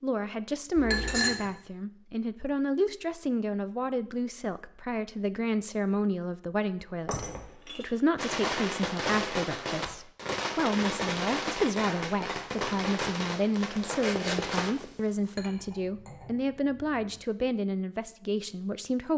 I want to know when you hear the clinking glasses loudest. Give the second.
1 s.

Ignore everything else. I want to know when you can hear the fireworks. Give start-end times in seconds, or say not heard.
8.2-14.8.